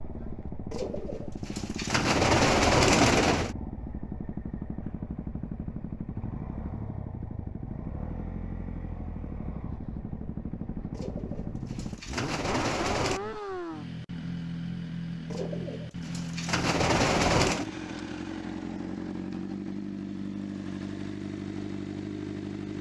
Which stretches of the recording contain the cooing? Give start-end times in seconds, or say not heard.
0.7-3.5, 10.9-13.2, 15.3-17.6.